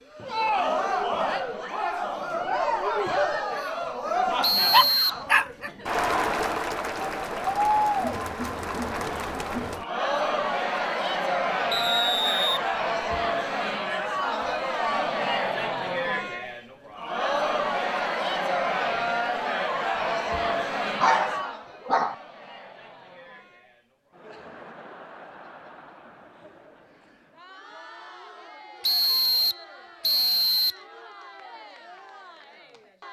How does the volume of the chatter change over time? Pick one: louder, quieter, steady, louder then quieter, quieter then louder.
quieter.